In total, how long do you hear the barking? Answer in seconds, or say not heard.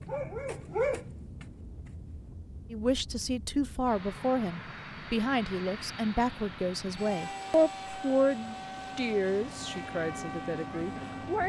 2 s.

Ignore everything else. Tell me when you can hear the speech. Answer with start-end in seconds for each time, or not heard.
2.7-11.4.